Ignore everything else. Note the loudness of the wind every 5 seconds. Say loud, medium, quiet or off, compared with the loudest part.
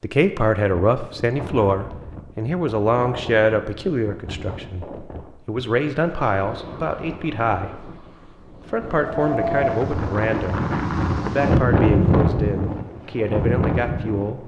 quiet, medium, loud.